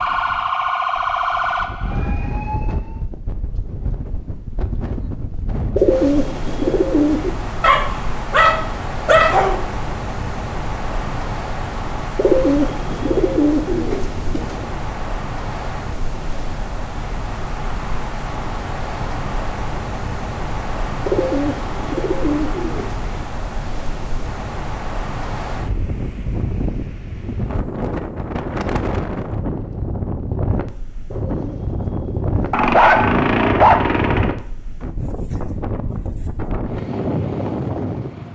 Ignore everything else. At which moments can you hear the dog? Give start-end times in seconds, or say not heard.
7.6-9.7, 32.5-34.4.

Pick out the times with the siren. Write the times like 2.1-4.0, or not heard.
0.0-3.0.